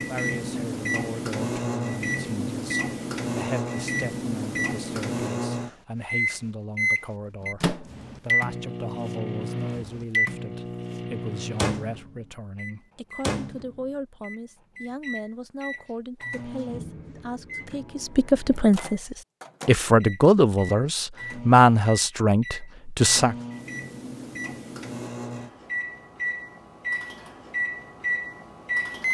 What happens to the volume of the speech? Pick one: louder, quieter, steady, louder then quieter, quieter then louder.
louder.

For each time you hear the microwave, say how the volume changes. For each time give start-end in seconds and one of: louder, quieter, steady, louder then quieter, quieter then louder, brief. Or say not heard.
0.0-29.0 quieter then louder.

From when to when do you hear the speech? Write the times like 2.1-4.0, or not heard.
0.1-23.4.